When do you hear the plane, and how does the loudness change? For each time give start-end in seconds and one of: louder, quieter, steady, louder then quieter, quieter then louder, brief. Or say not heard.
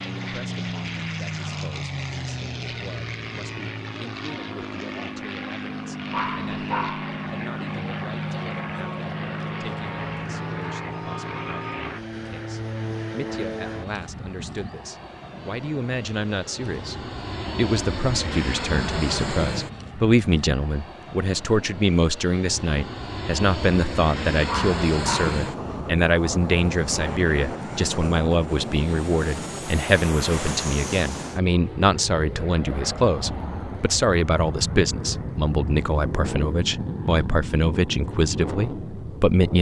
0.0-39.5 steady.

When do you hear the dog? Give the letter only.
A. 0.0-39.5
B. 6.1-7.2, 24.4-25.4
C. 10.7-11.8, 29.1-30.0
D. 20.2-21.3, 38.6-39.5
B.